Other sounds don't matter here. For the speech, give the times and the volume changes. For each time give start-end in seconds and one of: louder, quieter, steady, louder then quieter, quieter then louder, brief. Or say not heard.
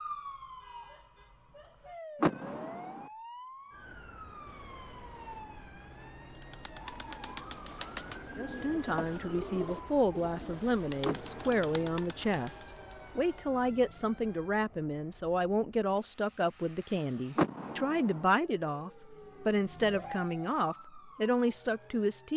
8.3-22.3 steady.